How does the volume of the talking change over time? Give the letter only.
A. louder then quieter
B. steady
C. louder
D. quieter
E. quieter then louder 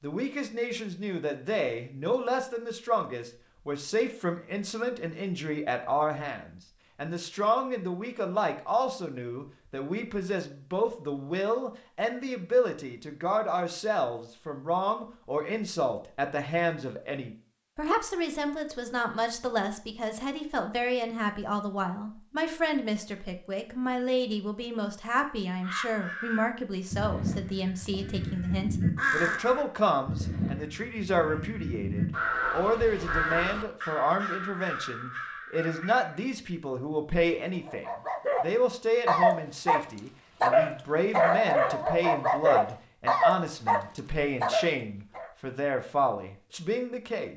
B.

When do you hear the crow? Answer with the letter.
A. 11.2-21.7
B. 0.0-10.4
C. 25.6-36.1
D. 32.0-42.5
C.